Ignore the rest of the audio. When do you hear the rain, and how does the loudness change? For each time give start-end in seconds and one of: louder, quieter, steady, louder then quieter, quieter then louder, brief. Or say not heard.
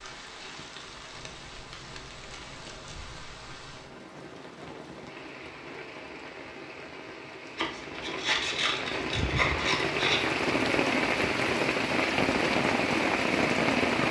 0.0-14.0 louder.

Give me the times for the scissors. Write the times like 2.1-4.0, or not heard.
1.1-3.9, 7.5-10.2.